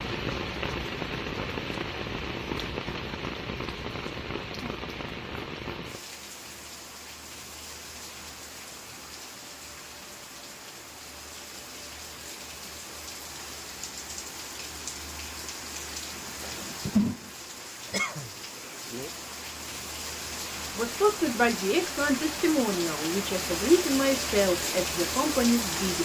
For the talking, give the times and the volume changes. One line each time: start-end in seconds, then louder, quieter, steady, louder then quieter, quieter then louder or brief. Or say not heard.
20.7-26.0 steady.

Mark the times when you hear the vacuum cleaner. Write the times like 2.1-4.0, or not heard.
not heard.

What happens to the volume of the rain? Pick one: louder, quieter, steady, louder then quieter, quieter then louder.
quieter then louder.